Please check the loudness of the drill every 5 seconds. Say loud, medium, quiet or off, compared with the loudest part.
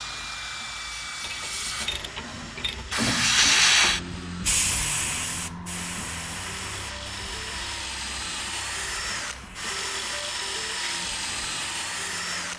medium, loud, loud.